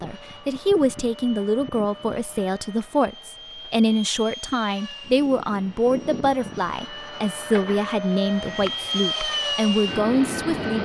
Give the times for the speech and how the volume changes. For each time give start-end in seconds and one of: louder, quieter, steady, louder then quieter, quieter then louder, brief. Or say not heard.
0.0-10.8 steady.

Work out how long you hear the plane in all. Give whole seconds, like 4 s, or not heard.
11 s.